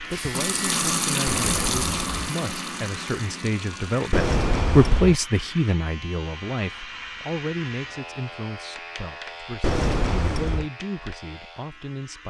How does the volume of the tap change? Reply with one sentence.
The volume of the tap goes down.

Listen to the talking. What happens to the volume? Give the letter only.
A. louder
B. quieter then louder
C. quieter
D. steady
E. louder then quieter
E.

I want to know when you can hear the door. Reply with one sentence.
The door can be heard from 1.2 to 2.3 s, from 4.1 to 5.2 s and from 9.6 to 10.7 s.